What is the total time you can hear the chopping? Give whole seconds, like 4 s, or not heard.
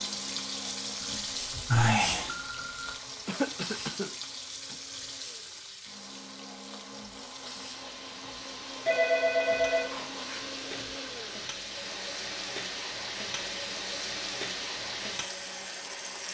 not heard.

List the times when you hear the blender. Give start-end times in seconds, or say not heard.
0.0-16.2.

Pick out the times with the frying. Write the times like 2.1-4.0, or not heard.
0.0-16.2.